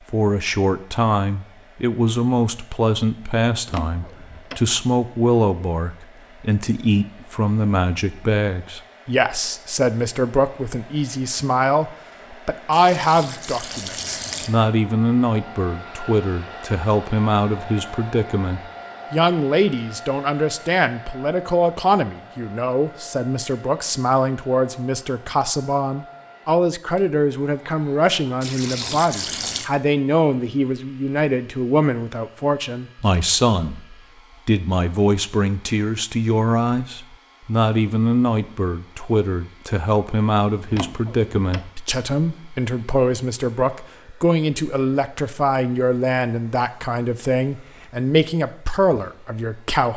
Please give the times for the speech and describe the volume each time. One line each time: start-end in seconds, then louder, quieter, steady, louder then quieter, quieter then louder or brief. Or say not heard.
0.1-49.9 steady.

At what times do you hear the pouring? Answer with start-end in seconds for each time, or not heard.
12.7-14.5, 28.4-29.7.